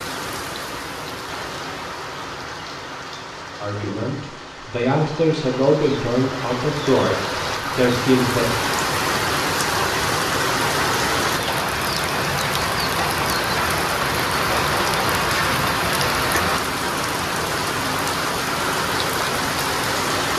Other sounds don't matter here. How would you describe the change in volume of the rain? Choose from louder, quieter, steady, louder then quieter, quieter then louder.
louder.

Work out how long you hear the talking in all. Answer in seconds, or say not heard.
5 s.